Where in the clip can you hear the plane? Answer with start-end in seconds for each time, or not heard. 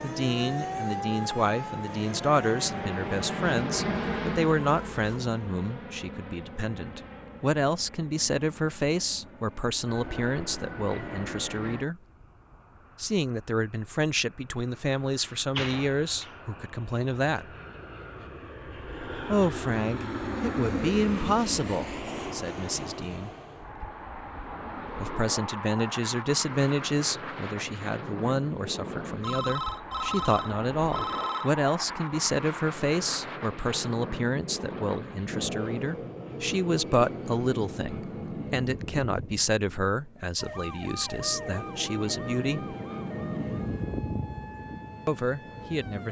0.0-46.0.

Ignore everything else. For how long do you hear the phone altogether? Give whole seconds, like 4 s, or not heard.
2 s.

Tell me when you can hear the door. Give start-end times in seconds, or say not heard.
14.7-16.4.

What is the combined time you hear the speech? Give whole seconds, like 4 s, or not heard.
39 s.